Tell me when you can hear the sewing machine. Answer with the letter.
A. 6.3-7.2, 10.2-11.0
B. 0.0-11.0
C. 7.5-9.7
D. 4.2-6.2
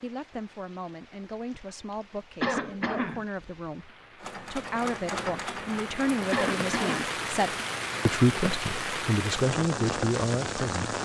D.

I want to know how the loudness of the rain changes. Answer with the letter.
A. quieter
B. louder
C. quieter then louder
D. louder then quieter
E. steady
B.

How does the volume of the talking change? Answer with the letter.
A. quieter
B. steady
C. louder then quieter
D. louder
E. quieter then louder
D.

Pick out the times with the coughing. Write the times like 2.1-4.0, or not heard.
2.4-3.2, 6.3-7.0.